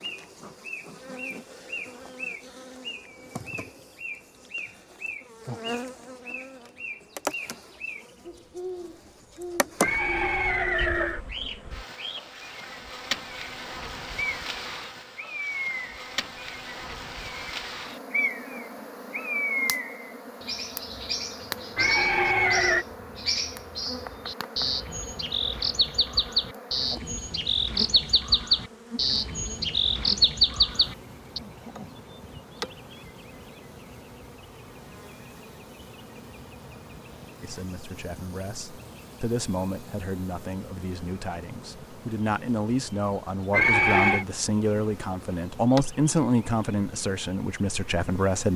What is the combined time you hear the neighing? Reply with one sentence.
The neighing can be heard for 3 seconds in total.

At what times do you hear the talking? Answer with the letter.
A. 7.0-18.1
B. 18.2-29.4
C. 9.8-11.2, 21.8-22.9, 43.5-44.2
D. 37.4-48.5
D.